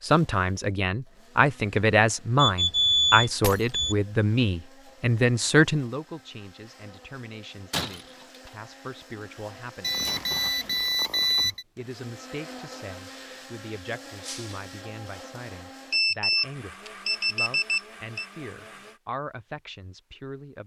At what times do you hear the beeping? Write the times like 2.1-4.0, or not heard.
2.4-4.0, 9.8-11.7, 15.9-18.2.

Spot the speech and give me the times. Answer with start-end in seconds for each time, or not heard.
0.0-10.1, 11.4-20.6.